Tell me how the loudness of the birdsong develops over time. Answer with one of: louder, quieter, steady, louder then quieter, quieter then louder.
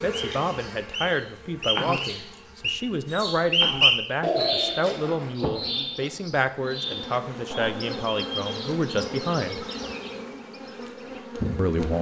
louder then quieter.